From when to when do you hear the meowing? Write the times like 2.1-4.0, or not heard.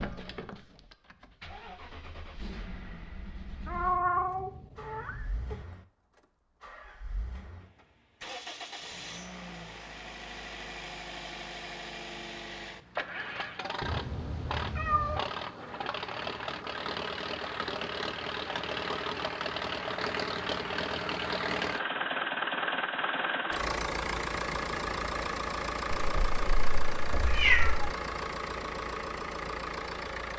3.6-5.7, 13.8-15.3, 25.9-27.9.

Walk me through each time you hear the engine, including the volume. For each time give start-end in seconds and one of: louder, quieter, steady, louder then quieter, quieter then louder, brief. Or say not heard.
0.0-30.3 louder.